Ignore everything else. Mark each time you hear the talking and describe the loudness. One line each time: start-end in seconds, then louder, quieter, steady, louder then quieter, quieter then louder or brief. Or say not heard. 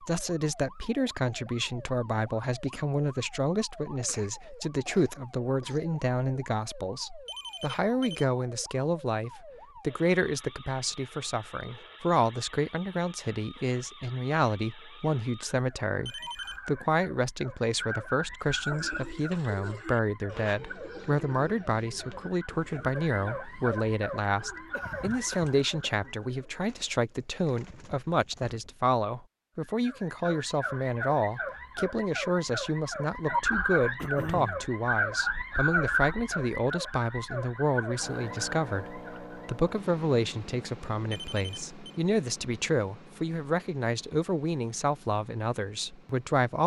0.0-46.6 steady.